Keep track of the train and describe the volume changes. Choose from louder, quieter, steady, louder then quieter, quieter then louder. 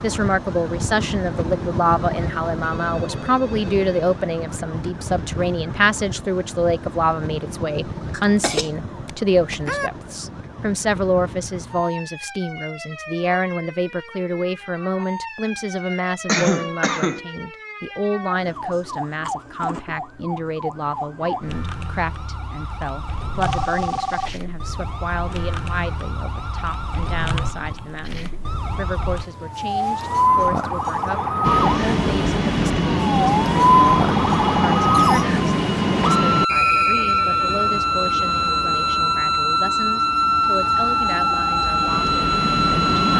quieter then louder.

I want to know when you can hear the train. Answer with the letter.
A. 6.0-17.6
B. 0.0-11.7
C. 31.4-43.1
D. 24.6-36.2
C.